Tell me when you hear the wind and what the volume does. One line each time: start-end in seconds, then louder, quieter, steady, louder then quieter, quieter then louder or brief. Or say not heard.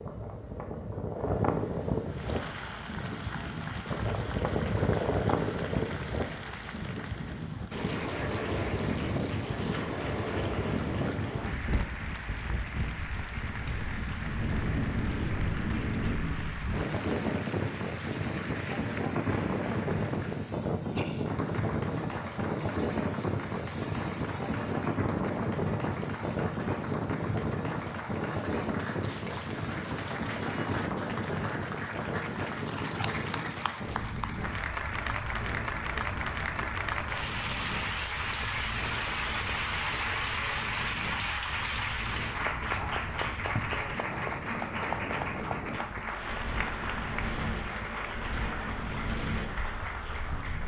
0.0-50.6 quieter.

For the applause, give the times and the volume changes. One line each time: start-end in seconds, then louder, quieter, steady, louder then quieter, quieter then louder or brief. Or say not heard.
2.0-50.6 louder.